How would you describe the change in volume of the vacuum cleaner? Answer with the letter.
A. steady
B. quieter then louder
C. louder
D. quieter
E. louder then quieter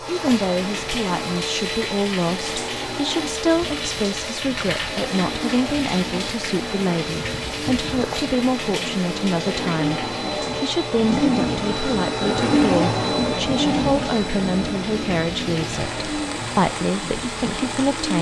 E.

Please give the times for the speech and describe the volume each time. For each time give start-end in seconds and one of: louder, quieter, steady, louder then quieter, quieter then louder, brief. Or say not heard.
0.1-18.1 steady.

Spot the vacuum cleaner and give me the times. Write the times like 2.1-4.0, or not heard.
0.0-18.1.